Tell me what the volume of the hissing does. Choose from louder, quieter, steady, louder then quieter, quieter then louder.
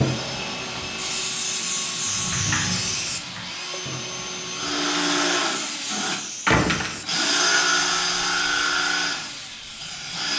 quieter.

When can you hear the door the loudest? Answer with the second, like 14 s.
7 s.